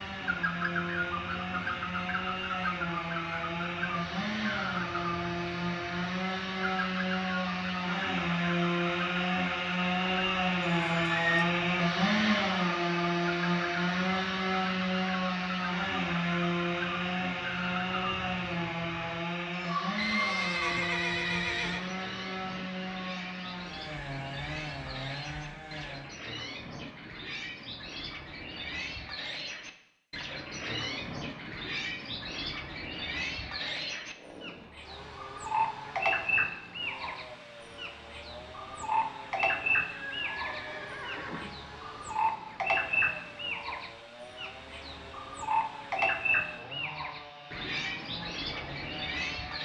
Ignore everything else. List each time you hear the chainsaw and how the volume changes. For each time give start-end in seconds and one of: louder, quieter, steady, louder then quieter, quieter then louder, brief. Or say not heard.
0.0-26.1 louder then quieter
34.0-49.5 steady.